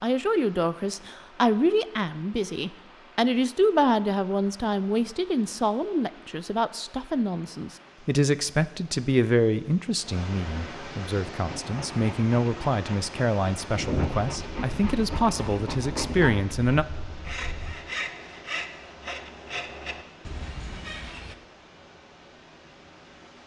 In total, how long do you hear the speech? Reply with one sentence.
You can hear the speech for 17 seconds altogether.